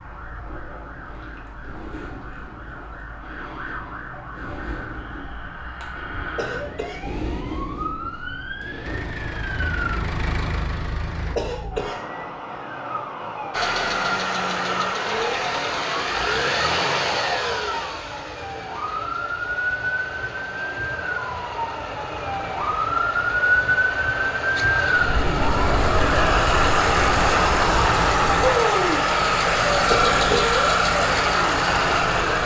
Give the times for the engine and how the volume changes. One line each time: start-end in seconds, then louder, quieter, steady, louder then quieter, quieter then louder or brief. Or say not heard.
8.8-11.4 brief
13.5-32.4 quieter then louder.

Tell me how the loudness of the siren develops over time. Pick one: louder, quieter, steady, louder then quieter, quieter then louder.
louder.